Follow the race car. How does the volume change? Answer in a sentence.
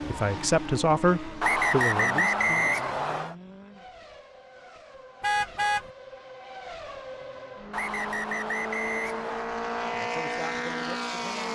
The volume of the race car goes down, then up.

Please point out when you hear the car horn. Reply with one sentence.
The car horn can be heard from 5.2 to 5.9 s.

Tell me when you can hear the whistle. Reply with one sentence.
You can hear the whistle from 1.4 to 3.4 s and from 7.7 to 9.5 s.